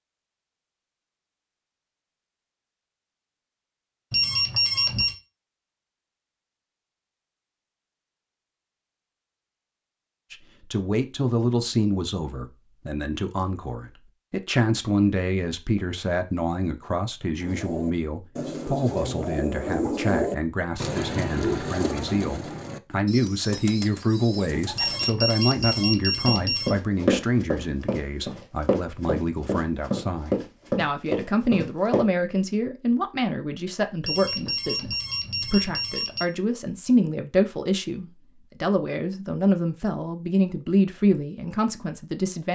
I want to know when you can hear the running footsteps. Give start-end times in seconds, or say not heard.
26.2-32.0.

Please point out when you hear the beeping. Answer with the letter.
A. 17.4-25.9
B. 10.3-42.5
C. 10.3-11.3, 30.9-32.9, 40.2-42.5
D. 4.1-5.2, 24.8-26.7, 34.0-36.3
D.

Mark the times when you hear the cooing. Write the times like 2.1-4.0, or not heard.
17.4-25.9.